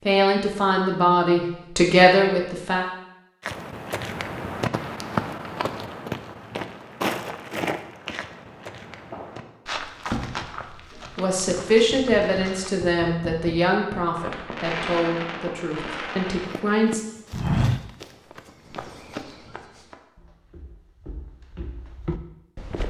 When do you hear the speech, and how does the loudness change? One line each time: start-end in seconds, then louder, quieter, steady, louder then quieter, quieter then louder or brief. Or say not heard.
0.0-2.9 brief
11.0-17.0 quieter.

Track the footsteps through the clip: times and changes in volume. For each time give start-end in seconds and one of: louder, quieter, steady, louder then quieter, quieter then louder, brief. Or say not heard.
3.5-12.8 quieter
16.4-22.8 quieter then louder.